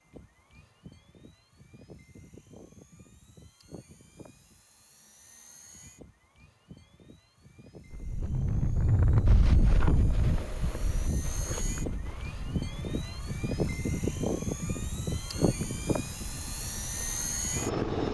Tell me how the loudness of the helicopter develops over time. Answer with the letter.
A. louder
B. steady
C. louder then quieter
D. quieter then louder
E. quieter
A.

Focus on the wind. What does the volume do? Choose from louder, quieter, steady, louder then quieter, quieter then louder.
quieter.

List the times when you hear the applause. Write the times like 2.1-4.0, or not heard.
not heard.